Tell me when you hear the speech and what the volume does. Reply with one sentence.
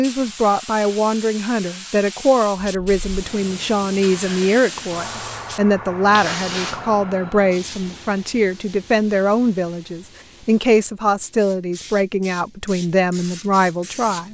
The speech can be heard from 0.0 to 14.2 s, at a steady volume.